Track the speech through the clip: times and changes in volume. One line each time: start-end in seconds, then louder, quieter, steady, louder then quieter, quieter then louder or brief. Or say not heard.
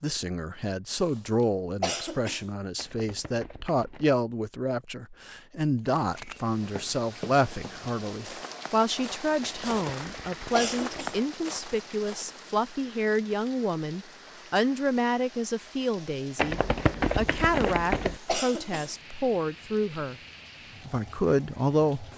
0.0-20.1 steady
20.9-22.1 brief.